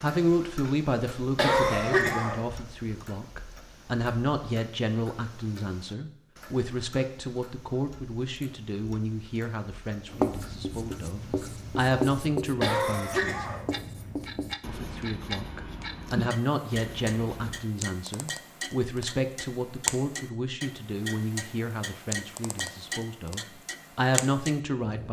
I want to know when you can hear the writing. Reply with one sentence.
The writing can be heard from 10.1 to 17.6 s.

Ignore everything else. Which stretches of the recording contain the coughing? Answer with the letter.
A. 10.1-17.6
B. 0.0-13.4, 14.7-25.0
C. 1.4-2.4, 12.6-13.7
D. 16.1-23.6
C.